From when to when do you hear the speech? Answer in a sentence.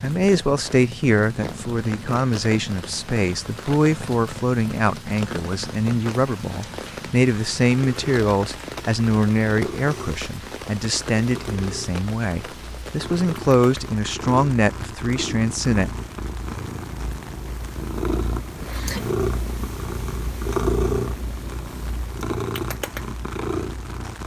You can hear the speech from 0.0 to 15.9 s.